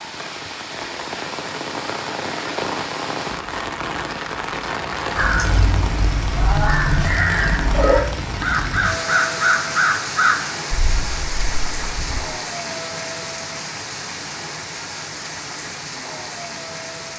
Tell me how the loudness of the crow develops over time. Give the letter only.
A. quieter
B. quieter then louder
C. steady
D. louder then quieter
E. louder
D.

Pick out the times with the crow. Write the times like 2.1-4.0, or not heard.
5.2-12.2.